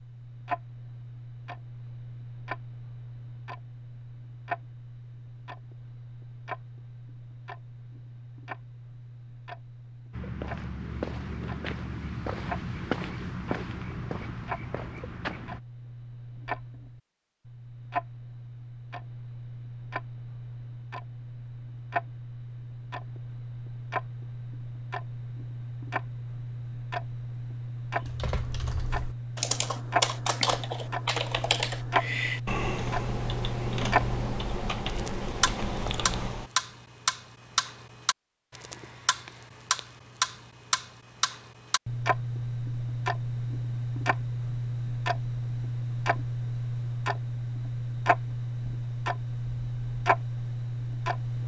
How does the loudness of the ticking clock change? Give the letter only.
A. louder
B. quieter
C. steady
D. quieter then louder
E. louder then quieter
A.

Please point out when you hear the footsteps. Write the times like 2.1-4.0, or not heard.
10.1-15.6.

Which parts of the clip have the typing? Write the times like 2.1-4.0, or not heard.
28.0-36.5.